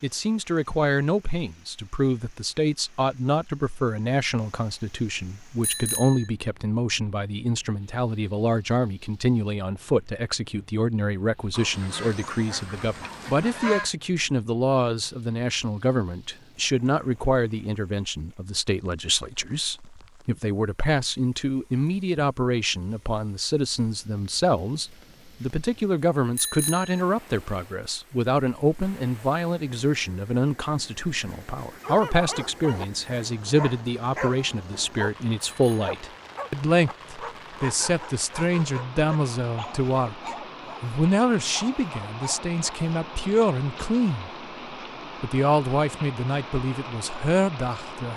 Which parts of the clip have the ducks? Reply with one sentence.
You can hear the ducks from 11.5 to 13.9 s.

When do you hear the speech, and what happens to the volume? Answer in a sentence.
The speech can be heard from 0.0 to 44.3 s, at a steady volume; and briefly from 45.2 to 48.1 s.